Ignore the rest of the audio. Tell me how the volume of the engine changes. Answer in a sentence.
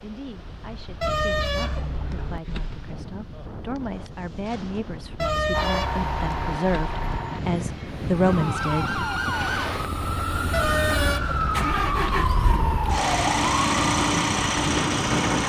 The volume of the engine goes down, then up.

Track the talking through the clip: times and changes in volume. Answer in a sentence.
The talking can be heard from 0.0 to 9.0 s, getting louder.